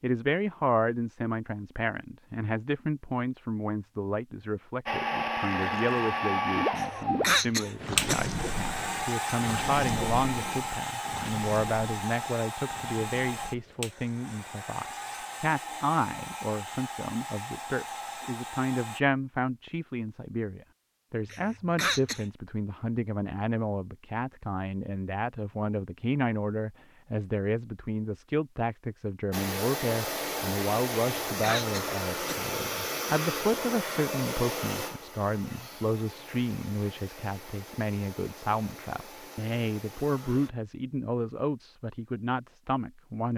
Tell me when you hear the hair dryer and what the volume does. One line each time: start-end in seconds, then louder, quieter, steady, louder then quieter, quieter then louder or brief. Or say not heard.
4.8-19.0 quieter
29.3-40.5 quieter.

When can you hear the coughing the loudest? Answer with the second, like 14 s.
7 s.